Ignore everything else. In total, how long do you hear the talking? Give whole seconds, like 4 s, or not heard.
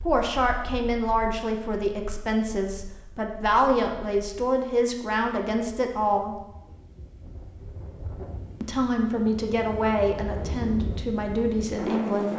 10 s.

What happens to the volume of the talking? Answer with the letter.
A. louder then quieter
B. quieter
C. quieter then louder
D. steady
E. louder
D.